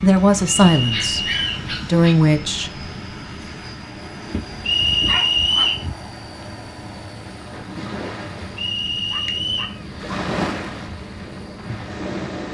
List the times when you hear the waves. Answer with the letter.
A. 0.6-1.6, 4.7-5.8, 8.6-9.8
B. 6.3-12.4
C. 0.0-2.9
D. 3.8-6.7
B.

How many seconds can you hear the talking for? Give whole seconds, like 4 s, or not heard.
3 s.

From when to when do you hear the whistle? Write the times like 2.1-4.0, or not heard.
0.6-1.6, 4.7-5.8, 8.6-9.8.